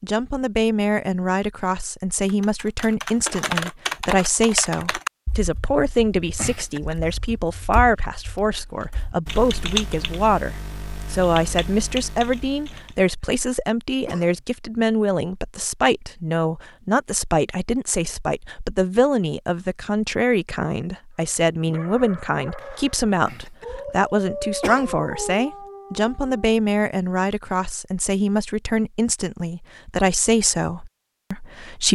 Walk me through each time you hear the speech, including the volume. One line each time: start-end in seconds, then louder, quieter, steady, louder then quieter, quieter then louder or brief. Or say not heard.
0.0-31.9 steady.